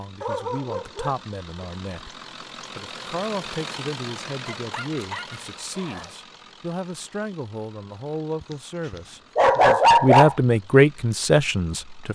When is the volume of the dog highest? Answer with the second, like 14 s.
10 s.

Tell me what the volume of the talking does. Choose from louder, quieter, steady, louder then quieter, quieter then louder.
louder.